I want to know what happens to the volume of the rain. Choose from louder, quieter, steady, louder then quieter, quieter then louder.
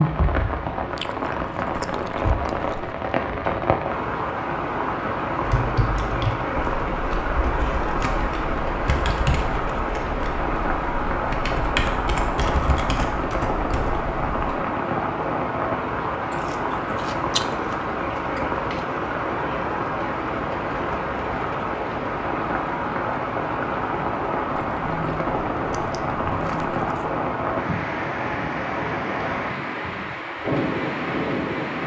steady.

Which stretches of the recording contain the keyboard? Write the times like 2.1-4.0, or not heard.
5.4-14.6.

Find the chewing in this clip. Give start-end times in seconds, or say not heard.
0.9-3.0, 16.3-18.9, 24.5-27.1.